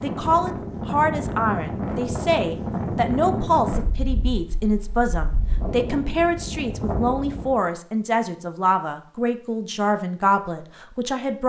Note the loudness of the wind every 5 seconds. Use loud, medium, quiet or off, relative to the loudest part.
loud, loud, off.